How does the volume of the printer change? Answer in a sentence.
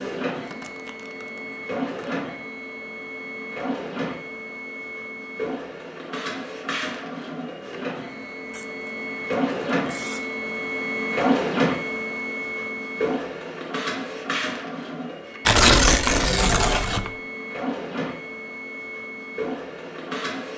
The volume of the printer goes up, then down.